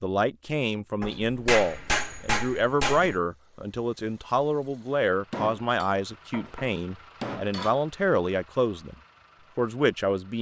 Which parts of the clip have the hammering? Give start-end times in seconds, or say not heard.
1.0-3.2, 5.3-7.8.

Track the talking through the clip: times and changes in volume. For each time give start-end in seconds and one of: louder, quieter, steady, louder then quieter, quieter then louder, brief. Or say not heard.
0.0-8.9 steady
9.6-10.3 brief.